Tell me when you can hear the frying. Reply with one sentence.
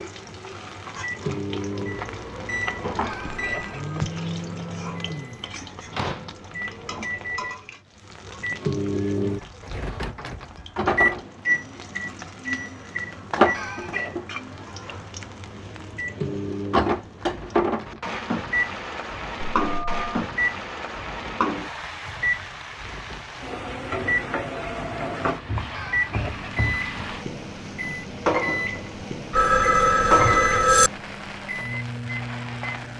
The frying can be heard from 0.0 to 32.9 s.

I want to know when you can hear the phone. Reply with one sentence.
The phone can be heard from 3.3 to 4.1 s, from 19.6 to 20.2 s and from 29.3 to 30.9 s.